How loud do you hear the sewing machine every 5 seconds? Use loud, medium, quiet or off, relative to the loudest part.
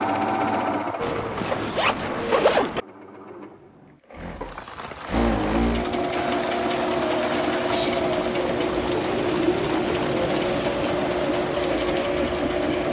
medium, loud, loud.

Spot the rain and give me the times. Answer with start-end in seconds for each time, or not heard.
4.2-12.8.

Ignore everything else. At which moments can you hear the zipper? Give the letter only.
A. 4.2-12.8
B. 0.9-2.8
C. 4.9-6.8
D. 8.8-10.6
B.